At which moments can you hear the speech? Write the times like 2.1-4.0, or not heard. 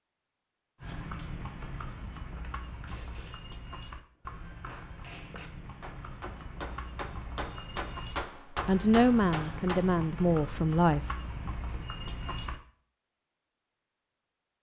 8.7-11.1.